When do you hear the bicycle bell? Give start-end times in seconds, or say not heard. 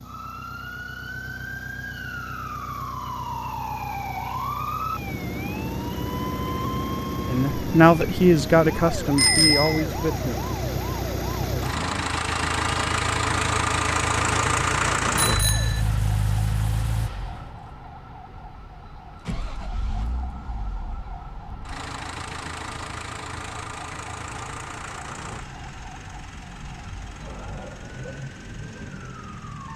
9.2-9.8, 15.2-15.8.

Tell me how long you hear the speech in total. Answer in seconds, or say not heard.
3 s.